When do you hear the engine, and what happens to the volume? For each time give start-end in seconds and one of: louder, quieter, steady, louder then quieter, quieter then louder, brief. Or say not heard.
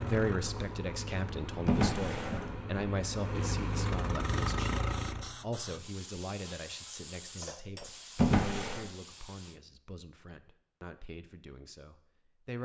0.0-5.3 louder.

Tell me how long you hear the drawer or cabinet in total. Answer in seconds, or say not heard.
2 s.